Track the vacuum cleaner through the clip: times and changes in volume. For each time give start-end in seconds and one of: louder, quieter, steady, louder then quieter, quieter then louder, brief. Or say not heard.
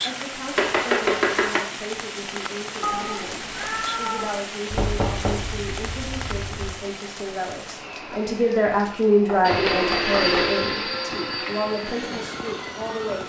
7.7-13.2 louder then quieter.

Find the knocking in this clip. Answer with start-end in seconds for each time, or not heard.
0.6-1.6, 4.7-6.7, 9.2-10.7.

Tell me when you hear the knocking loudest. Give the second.
1 s.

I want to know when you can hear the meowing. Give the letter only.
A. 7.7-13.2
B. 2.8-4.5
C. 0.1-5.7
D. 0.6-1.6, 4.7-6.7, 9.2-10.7
B.